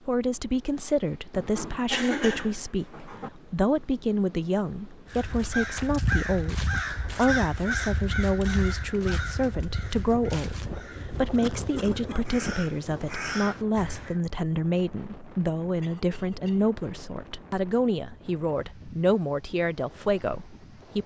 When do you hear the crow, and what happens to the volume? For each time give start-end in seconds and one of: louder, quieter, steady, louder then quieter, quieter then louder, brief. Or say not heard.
5.0-14.2 quieter then louder.